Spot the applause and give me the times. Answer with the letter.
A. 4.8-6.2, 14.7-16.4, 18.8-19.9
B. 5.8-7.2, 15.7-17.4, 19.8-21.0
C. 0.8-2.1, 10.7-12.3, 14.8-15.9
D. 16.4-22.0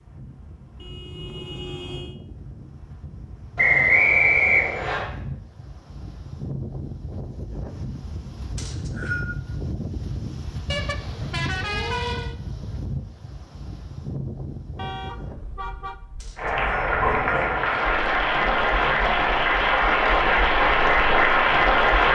D.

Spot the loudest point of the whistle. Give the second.
4 s.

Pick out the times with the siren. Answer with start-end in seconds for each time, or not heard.
not heard.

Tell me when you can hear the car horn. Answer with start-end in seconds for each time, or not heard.
0.8-2.1, 10.7-12.3, 14.8-15.9.